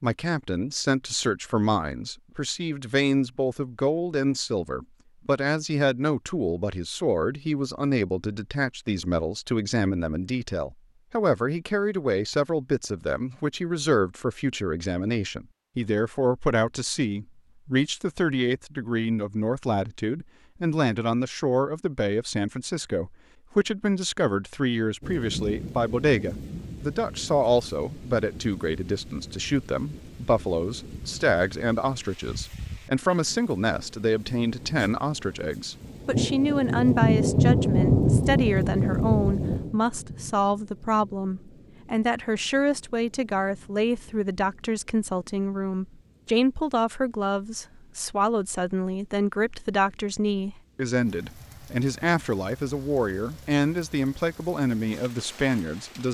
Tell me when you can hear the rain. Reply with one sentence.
The rain can be heard from 25.0 to 56.1 s.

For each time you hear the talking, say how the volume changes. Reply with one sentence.
You can hear the talking from 0.0 to 56.1 s, at a steady volume.